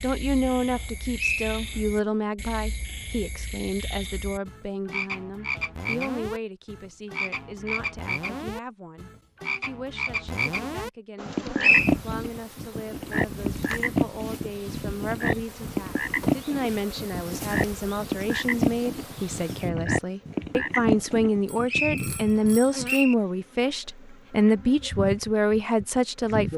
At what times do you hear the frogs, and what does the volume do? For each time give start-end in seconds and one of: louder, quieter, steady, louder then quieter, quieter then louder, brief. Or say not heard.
0.0-22.0 louder.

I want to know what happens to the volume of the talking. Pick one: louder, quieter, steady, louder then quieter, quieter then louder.
quieter then louder.